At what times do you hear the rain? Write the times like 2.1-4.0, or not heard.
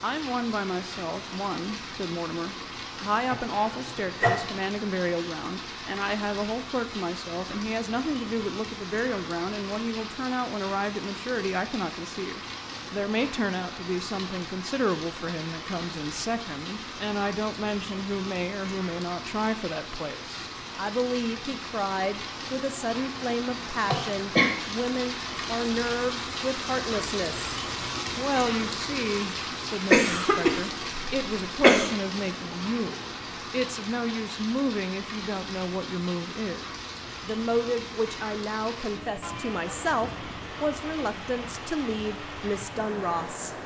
0.0-43.6.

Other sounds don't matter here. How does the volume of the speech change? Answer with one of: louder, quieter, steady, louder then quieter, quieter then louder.
steady.